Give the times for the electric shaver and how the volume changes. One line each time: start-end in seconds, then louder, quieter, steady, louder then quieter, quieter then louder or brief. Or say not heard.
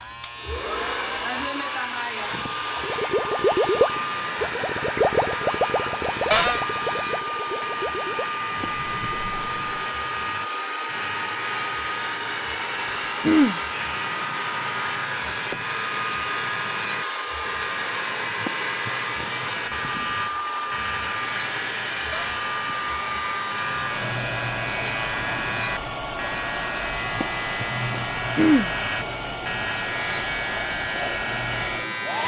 0.0-32.2 louder.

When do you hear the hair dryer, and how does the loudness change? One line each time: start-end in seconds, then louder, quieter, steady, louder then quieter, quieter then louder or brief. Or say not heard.
0.0-32.2 steady.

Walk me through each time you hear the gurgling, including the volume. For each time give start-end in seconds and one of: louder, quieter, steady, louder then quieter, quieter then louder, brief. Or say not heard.
2.8-9.9 quieter.